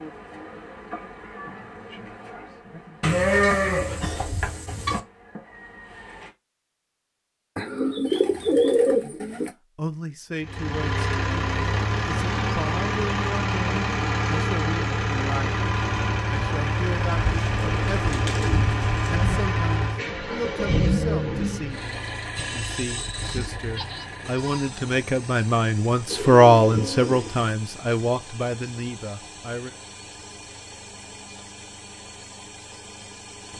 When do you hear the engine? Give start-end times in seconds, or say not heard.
10.4-33.5.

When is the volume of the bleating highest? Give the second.
3 s.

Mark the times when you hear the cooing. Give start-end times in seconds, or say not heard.
7.5-9.5, 17.2-19.6, 26.1-27.6.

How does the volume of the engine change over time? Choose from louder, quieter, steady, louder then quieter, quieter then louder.
quieter.